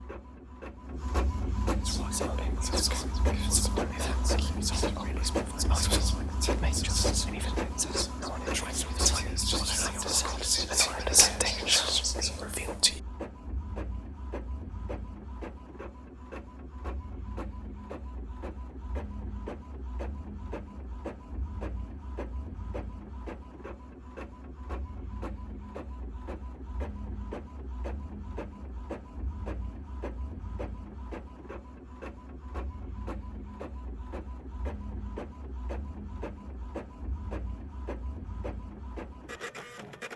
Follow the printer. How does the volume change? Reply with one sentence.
The volume of the printer goes down.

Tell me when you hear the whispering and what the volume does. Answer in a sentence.
You can hear the whispering from 1.9 to 13.0 s, getting louder.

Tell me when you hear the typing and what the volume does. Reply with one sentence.
The typing can't be heard in this clip.